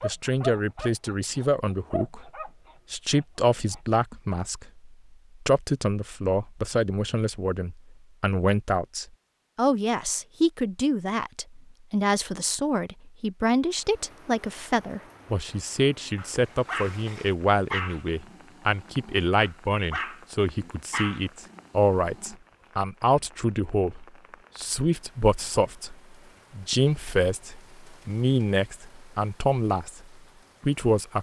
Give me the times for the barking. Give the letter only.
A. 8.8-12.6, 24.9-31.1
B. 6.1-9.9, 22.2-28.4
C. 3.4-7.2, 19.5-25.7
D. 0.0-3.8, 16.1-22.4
D.